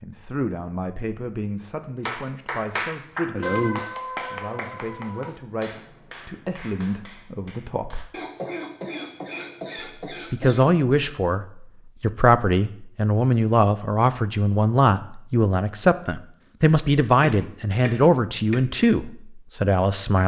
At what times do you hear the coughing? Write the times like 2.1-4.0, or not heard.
2.9-3.9, 8.1-10.7, 17.2-18.6.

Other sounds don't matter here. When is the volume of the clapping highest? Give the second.
4 s.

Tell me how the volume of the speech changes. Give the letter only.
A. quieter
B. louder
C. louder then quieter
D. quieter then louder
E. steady
B.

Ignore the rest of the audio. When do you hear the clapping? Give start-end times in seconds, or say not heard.
2.0-8.1.